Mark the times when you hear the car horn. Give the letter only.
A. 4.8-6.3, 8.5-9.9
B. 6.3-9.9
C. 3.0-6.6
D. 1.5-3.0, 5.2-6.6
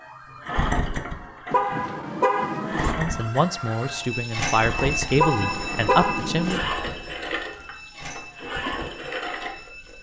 D.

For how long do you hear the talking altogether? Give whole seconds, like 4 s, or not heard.
4 s.